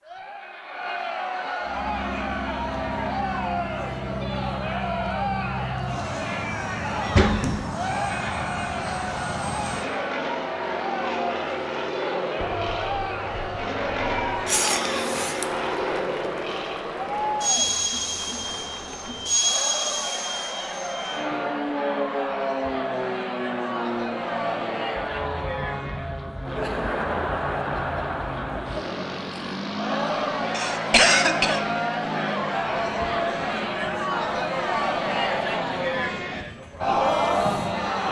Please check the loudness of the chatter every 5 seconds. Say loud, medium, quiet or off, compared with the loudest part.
medium, medium, medium, medium, medium, medium, loud, loud.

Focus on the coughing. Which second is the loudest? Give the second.
31 s.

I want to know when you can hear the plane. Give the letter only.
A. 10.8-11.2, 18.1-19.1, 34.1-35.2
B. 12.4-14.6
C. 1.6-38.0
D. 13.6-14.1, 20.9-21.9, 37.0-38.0
C.